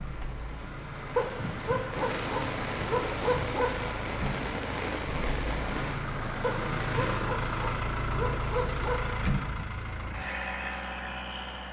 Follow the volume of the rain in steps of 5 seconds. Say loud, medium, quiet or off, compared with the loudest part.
loud, loud, off.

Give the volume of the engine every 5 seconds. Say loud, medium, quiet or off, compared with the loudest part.
medium, loud, loud.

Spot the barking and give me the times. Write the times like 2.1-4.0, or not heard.
1.1-3.9, 6.4-9.2.